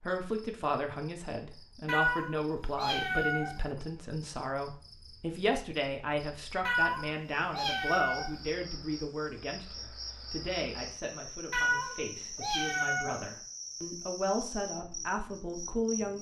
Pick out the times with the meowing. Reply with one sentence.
The meowing can be heard from 1.9 to 3.6 s, from 6.7 to 8.4 s and from 11.5 to 13.3 s.